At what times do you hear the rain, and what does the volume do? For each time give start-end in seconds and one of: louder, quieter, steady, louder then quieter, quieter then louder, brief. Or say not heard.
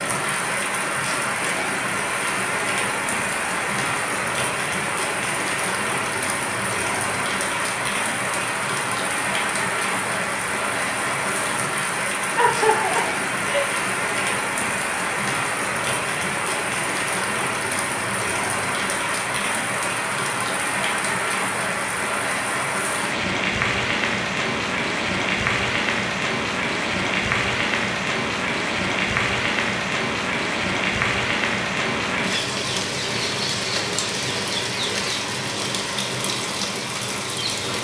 0.0-37.8 steady.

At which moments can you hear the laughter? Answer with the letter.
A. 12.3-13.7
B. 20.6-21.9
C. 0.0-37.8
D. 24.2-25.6
A.